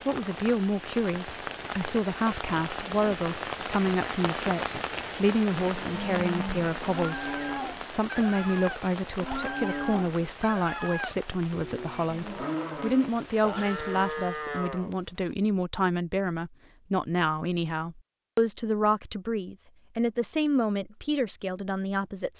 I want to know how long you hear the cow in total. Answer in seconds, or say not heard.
10 s.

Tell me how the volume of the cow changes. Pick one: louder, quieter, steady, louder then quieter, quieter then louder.
steady.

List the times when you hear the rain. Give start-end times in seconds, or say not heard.
0.0-14.4.